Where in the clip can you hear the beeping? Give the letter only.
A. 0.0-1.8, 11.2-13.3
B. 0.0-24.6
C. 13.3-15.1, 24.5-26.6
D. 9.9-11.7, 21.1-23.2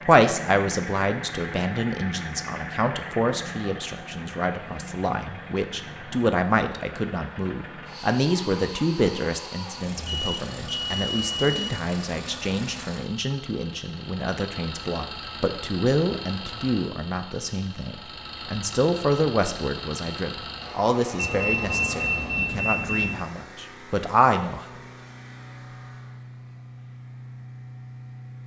D.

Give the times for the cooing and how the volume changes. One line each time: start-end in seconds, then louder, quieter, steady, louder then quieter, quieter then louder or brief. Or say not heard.
not heard.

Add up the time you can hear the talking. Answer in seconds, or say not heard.
25 s.